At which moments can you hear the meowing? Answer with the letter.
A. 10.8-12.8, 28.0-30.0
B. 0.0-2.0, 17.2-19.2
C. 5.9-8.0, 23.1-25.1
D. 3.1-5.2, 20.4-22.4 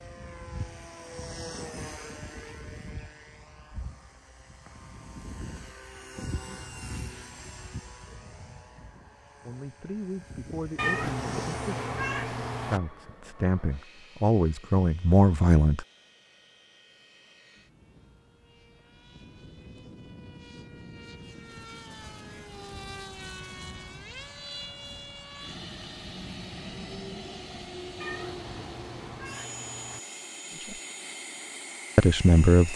A.